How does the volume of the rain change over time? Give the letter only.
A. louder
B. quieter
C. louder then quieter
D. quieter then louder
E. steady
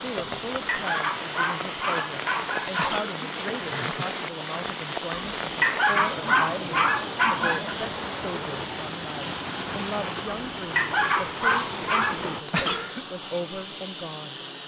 E.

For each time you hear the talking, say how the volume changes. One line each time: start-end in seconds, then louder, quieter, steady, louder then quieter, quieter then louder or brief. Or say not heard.
0.0-14.4 steady.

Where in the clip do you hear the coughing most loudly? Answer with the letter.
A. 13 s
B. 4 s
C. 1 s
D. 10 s
A.